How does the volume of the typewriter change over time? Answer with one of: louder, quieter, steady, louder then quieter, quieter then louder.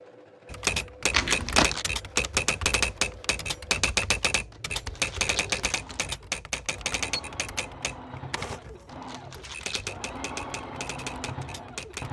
quieter.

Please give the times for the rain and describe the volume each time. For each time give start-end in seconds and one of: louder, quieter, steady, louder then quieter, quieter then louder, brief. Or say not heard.
not heard.